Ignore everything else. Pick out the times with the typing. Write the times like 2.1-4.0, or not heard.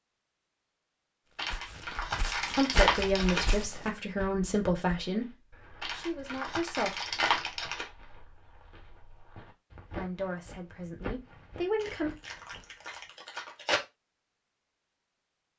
not heard.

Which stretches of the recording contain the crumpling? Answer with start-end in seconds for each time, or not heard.
1.4-3.5, 5.8-7.9, 11.8-13.8.